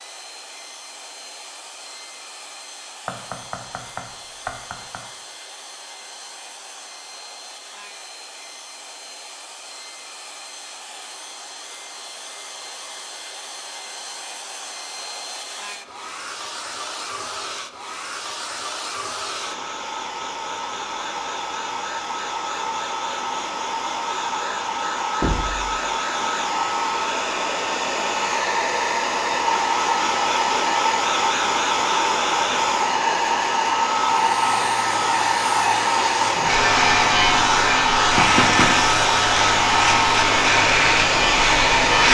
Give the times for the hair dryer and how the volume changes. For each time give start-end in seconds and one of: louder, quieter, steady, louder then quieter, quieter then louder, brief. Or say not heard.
0.0-42.0 louder.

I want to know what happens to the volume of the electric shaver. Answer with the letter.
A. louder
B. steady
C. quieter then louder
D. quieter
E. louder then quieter
A.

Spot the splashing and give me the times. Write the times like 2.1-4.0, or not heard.
not heard.